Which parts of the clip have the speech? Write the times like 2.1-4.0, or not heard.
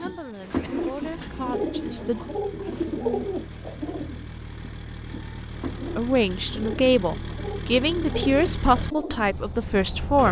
0.0-2.2, 6.0-10.2.